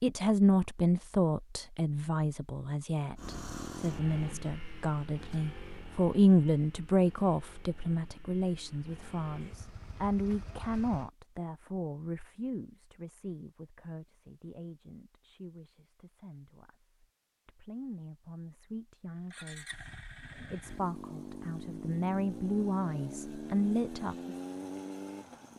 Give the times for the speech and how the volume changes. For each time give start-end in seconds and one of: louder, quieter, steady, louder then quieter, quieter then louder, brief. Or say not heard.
0.0-24.4 quieter then louder.